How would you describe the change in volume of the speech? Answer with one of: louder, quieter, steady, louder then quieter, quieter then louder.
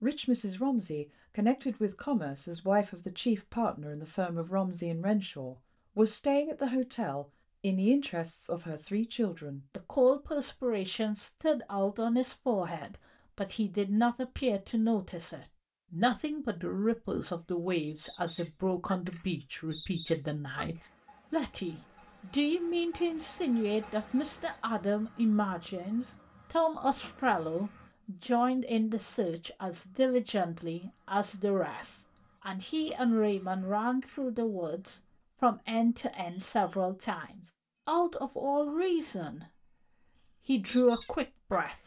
steady.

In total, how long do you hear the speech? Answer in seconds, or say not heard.
42 s.